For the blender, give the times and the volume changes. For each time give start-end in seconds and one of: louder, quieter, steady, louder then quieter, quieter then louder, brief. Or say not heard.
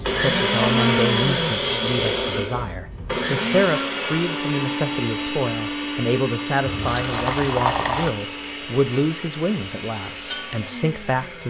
0.0-11.4 quieter.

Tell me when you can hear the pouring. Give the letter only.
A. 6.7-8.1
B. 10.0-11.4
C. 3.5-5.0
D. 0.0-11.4
A.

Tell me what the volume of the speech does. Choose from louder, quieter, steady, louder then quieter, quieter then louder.
steady.